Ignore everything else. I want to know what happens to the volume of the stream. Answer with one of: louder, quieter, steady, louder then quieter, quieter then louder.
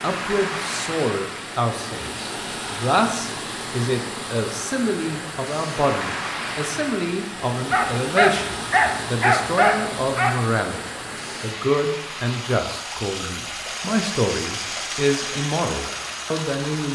steady.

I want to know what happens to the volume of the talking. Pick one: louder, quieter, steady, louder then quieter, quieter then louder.
steady.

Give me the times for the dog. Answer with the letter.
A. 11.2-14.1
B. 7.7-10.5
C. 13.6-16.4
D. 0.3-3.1
B.